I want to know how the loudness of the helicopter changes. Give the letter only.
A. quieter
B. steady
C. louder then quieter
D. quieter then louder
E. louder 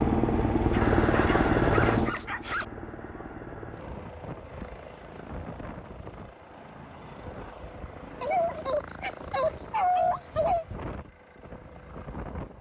A.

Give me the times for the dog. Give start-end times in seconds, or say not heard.
0.7-2.6, 8.2-10.7.